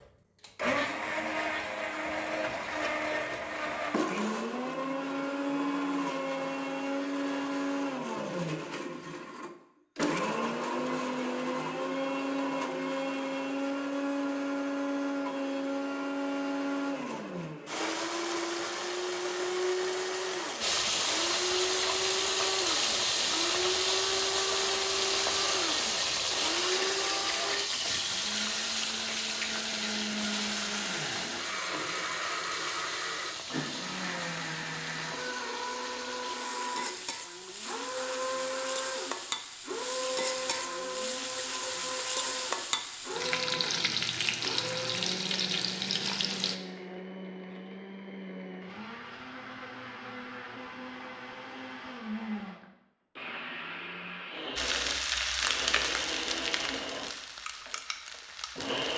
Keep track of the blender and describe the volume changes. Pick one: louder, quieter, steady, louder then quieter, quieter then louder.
quieter.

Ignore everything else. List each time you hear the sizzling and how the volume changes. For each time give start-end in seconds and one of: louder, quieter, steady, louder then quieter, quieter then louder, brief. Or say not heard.
20.6-46.5 quieter then louder
54.5-58.9 quieter.